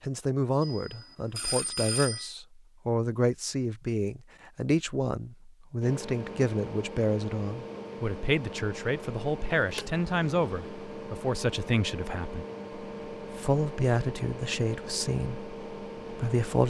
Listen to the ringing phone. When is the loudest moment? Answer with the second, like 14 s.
2 s.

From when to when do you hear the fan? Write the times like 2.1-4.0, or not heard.
5.8-16.6.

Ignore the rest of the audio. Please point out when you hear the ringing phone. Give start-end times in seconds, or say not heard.
0.6-2.3.